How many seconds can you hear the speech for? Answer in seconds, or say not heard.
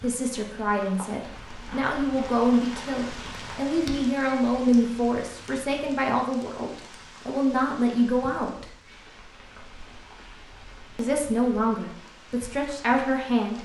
11 s.